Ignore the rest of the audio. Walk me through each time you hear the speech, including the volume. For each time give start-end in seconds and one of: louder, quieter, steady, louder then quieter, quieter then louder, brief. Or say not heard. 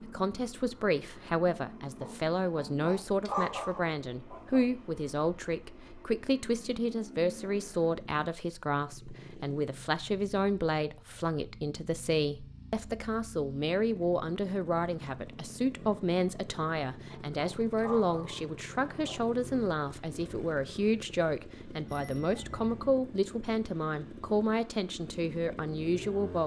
0.0-26.4 steady.